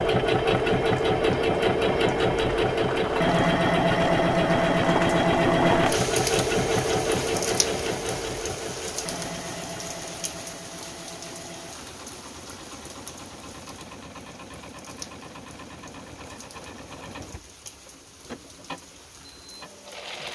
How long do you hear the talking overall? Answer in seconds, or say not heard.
not heard.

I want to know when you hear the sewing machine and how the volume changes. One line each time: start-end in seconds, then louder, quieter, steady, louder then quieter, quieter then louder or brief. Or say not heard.
0.0-20.3 quieter.